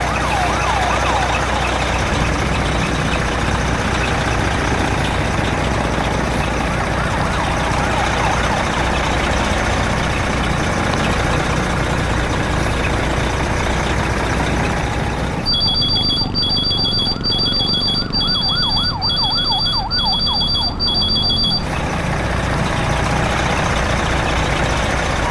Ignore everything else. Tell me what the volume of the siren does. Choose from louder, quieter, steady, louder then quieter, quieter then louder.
steady.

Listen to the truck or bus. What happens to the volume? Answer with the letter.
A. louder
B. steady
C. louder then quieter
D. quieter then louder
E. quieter
B.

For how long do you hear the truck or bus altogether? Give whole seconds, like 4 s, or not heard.
25 s.